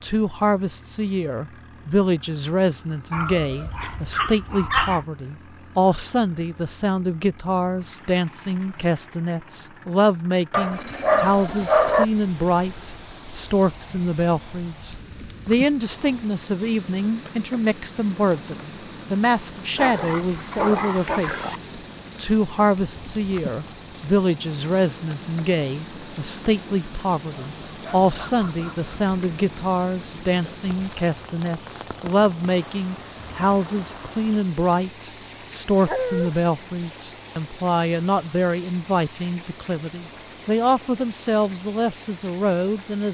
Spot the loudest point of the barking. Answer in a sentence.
The volume of the barking peaks at 12 seconds.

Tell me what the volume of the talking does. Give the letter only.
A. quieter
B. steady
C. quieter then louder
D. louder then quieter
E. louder
B.